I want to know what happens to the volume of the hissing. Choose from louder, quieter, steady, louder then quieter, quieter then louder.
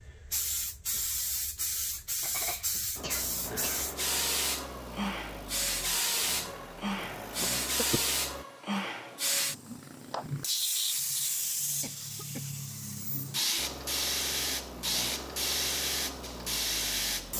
steady.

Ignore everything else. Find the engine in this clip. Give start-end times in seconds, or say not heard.
3.0-8.4, 13.6-17.3.